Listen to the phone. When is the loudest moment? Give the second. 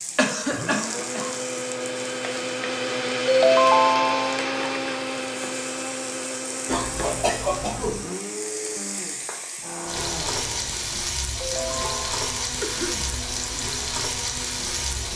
4 s.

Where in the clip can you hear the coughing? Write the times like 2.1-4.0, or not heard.
0.1-1.4, 6.7-8.1, 12.6-13.1.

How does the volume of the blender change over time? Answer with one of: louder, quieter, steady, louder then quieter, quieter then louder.
quieter.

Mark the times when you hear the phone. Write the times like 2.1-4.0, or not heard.
3.2-4.4, 11.4-12.2.